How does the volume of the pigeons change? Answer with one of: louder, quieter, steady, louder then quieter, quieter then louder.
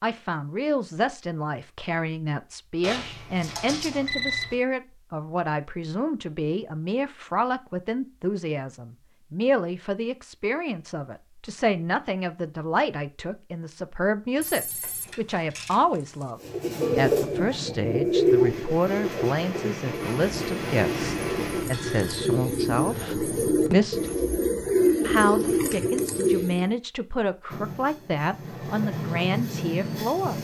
quieter then louder.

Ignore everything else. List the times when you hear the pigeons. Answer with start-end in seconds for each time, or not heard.
16.4-26.8.